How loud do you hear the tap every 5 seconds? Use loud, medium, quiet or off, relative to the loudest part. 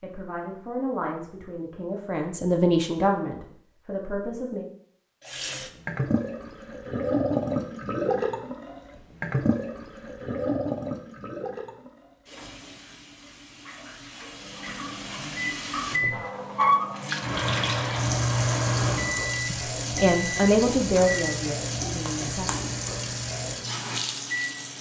off, loud, medium, loud, loud.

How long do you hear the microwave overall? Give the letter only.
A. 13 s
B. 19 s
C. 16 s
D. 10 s
D.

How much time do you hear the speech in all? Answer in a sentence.
You can hear the speech for 8 seconds altogether.